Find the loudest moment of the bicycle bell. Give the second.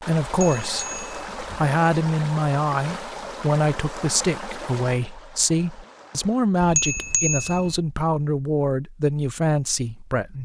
7 s.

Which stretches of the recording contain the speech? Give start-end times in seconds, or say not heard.
0.0-10.4.